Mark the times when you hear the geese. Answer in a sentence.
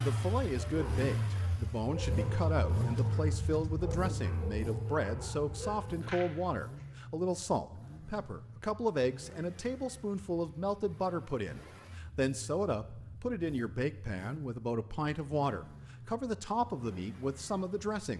You can't hear the geese here.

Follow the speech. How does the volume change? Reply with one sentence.
The volume of the speech stays about the same.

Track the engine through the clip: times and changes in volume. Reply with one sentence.
You can hear the engine from 0.0 to 18.1 s, getting quieter.